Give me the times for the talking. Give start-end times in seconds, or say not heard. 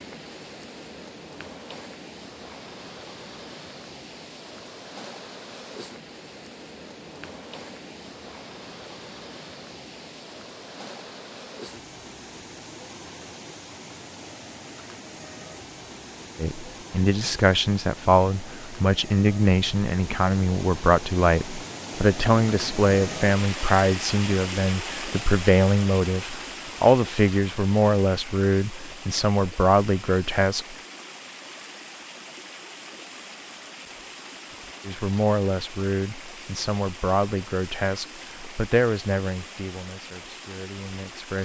16.4-30.8, 34.9-41.4.